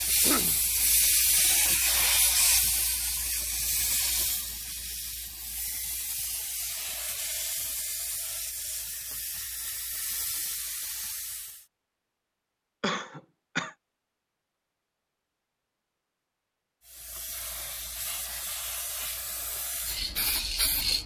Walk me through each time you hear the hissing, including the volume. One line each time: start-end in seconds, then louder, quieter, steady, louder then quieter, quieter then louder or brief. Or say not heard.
0.0-11.7 quieter
16.9-21.0 louder.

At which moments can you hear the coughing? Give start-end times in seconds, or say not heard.
0.1-0.6, 12.8-13.7.